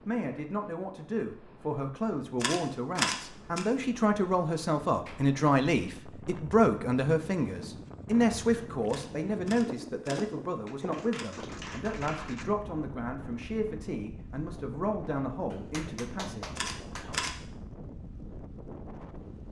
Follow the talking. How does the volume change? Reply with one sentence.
The loudness of the talking goes up, then down.